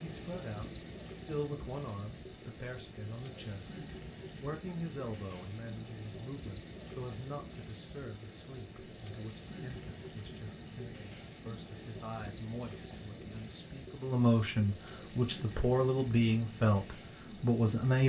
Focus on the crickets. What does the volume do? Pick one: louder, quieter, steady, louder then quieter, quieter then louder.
steady.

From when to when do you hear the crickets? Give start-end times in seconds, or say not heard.
0.0-18.0.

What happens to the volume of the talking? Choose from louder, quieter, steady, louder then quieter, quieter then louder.
quieter then louder.